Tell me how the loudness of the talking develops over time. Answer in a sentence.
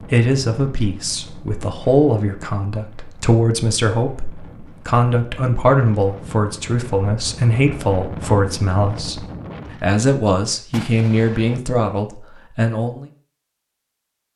The volume of the talking stays about the same.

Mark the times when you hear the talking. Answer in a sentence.
The talking can be heard from 0.1 to 13.1 s.